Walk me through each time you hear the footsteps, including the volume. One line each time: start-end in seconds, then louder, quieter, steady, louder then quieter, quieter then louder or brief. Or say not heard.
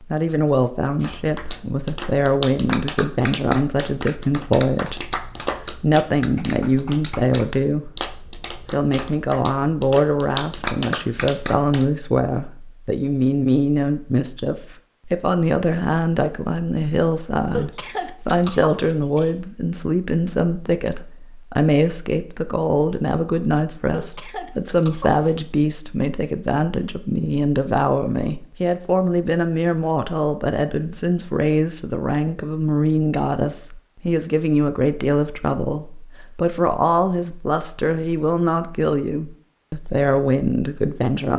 not heard.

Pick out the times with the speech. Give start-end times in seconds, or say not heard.
0.0-41.3.